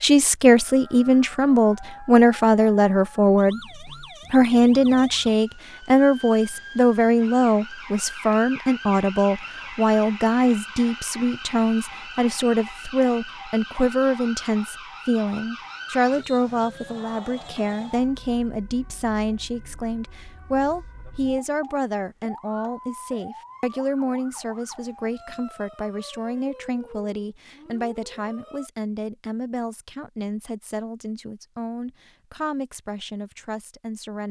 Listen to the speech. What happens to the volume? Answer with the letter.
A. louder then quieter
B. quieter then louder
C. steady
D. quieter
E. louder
D.